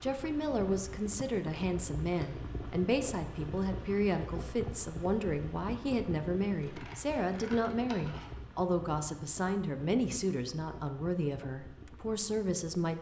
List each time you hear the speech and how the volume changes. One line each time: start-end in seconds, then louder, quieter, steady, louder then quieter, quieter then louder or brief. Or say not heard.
0.0-12.9 steady.